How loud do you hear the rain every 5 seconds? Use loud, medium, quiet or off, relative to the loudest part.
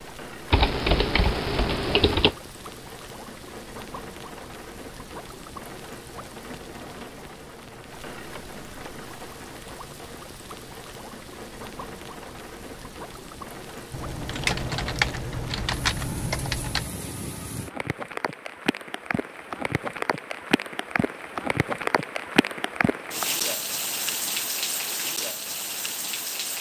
medium, medium, medium, medium, loud, loud.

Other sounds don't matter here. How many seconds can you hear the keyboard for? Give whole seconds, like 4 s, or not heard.
5 s.